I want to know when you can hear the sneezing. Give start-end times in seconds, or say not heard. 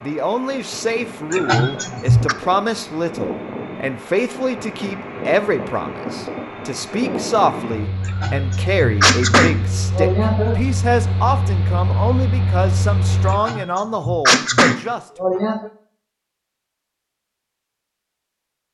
1.3-2.4, 8.1-10.6, 13.3-15.7.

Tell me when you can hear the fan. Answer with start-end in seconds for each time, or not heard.
0.0-13.4.